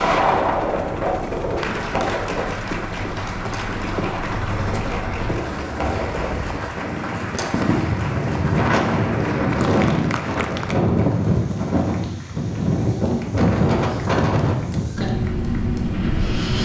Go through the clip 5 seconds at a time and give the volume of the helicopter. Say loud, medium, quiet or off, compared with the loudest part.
loud, loud, off, off.